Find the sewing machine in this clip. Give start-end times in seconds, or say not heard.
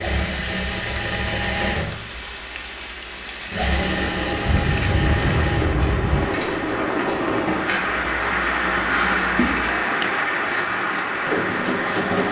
0.0-12.2.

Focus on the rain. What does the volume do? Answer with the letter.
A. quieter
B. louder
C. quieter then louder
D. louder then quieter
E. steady
B.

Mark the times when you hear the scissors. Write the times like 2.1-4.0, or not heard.
0.9-1.9, 4.5-6.3, 9.6-10.2.